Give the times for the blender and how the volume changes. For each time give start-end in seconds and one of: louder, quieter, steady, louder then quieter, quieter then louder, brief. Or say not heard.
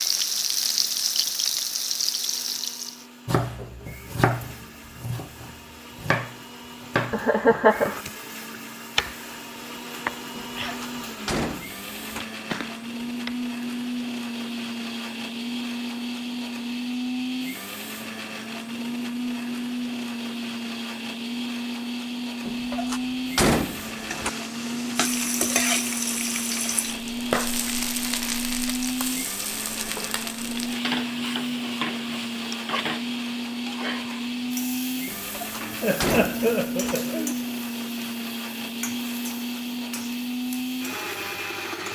0.0-41.8 louder.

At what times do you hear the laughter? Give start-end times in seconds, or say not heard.
7.1-8.0, 35.8-37.4.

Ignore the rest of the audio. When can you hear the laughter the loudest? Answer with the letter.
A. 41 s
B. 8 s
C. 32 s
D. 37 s
B.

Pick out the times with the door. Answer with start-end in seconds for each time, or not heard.
10.6-12.2, 22.4-24.3, 35.0-37.0.